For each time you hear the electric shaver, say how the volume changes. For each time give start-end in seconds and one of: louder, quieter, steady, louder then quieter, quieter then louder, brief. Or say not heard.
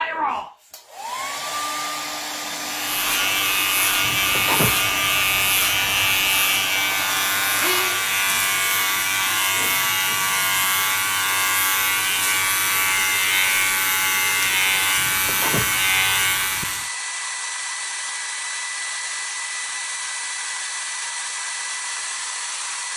2.6-16.9 steady.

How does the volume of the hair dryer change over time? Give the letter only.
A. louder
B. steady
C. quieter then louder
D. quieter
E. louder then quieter
B.